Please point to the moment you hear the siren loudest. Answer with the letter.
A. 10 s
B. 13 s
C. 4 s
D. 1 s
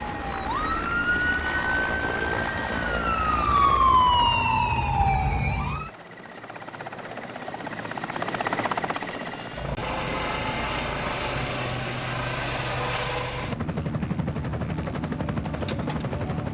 C.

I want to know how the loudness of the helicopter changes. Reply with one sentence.
The volume of the helicopter goes down, then up.